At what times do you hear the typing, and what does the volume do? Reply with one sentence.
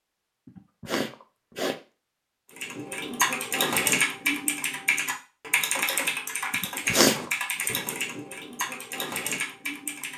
You can hear the typing from 2.5 to 10.1 s, getting quieter.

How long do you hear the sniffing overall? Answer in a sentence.
The sniffing can be heard for 2 seconds in total.